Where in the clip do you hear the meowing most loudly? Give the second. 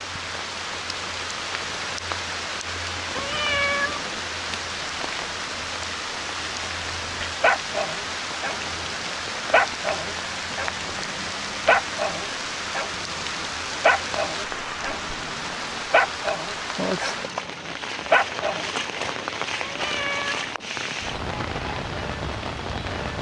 4 s.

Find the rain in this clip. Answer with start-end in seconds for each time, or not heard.
0.0-23.1.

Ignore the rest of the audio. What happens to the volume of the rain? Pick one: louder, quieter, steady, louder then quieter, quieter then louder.
steady.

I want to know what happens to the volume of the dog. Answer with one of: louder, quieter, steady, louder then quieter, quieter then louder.
steady.